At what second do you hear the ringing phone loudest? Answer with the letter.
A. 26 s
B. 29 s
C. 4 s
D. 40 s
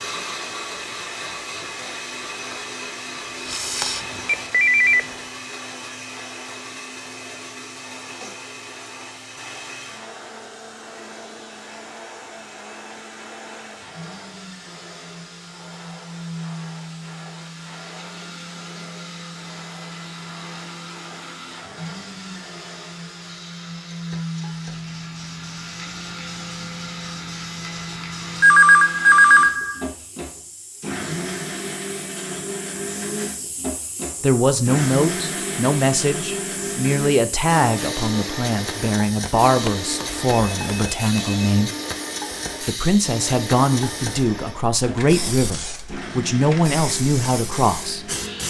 B.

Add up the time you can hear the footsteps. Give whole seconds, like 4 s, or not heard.
not heard.